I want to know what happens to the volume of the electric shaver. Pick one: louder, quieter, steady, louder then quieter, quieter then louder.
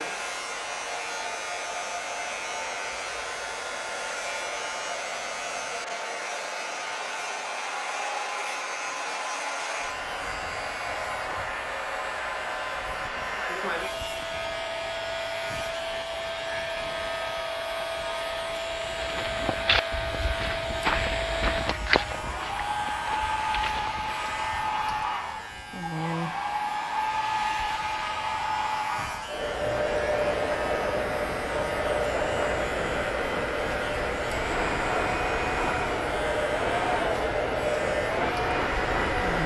steady.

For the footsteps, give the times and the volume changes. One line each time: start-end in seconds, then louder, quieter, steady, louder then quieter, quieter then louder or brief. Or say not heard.
18.8-24.4 quieter.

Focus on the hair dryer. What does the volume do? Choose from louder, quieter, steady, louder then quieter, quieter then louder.
louder.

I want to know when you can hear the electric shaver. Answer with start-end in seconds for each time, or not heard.
0.0-39.4.